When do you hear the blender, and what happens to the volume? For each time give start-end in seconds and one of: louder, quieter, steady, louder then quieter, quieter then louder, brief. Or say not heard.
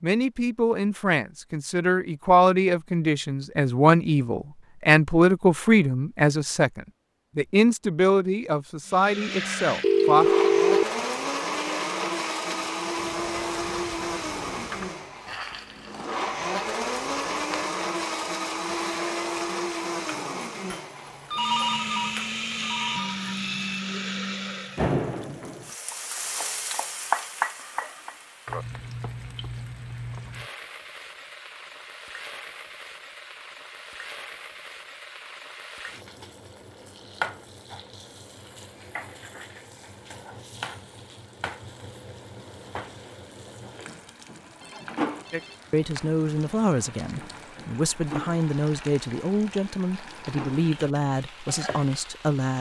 8.8-24.9 steady.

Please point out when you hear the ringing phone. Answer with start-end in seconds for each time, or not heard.
9.8-10.8, 21.3-23.4, 44.6-45.6.